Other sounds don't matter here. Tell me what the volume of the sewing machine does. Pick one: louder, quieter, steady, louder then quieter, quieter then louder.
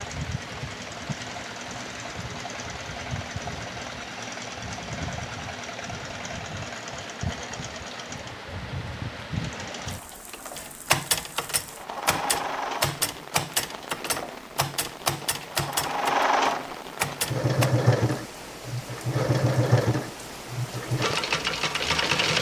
louder.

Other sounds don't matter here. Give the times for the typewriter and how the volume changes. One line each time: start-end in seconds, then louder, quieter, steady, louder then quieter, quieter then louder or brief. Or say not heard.
10.6-17.7 steady.